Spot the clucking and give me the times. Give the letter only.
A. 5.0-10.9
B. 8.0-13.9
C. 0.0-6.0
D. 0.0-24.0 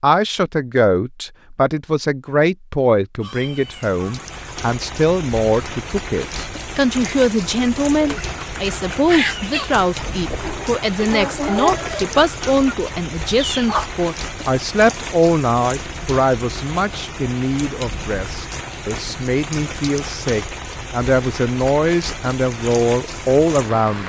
B.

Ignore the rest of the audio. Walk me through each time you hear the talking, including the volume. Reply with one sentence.
You can hear the talking from 0.0 to 24.0 s, at a steady volume.